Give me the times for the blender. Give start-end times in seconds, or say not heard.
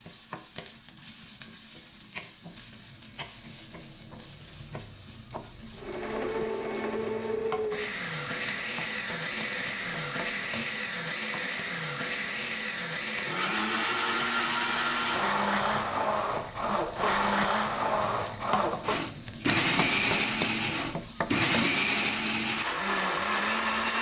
5.8-23.9.